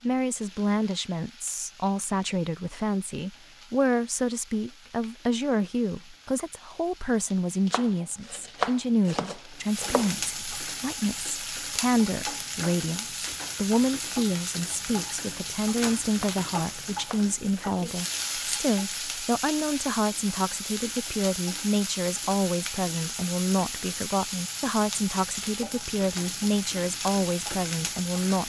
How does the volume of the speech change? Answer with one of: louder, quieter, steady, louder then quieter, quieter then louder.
steady.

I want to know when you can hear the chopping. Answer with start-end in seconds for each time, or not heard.
7.7-10.2, 16.1-17.9.